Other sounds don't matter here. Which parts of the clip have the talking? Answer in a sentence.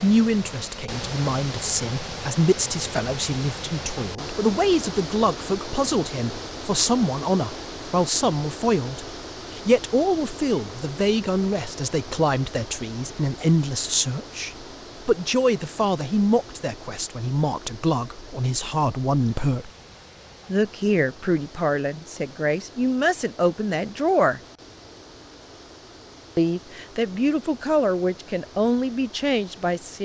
You can hear the talking from 0.0 to 19.7 s, from 20.4 to 24.4 s and from 26.4 to 30.0 s.